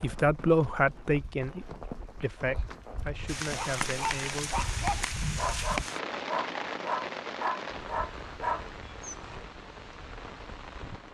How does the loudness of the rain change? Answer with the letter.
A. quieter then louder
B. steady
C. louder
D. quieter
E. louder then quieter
D.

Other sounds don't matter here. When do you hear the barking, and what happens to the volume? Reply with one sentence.
You can hear the barking from 3.5 to 9.4 s, at a steady volume.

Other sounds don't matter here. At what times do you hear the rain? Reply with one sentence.
The rain can be heard from 3.2 to 11.0 s.